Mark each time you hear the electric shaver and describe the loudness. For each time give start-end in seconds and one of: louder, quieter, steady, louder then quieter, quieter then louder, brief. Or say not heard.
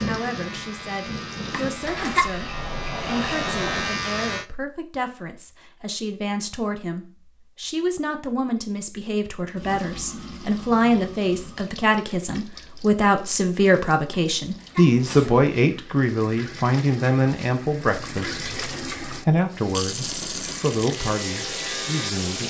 0.0-4.5 louder
20.4-22.4 brief.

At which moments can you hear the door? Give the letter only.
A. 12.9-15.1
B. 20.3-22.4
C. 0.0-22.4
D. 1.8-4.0
D.